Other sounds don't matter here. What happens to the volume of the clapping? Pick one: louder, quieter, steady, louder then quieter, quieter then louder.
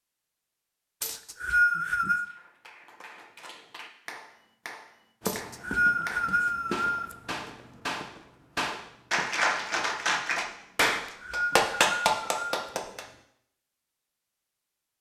louder.